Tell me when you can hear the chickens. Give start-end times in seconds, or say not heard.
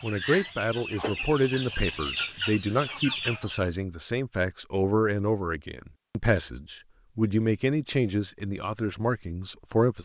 0.0-3.7.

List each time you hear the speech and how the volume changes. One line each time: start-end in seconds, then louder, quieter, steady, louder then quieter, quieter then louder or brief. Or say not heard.
0.0-9.9 steady.